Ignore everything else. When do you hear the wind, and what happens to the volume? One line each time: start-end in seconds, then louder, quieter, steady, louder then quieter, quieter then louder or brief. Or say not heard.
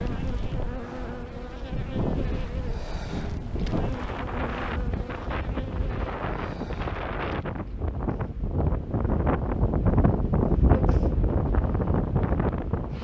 0.0-12.9 louder.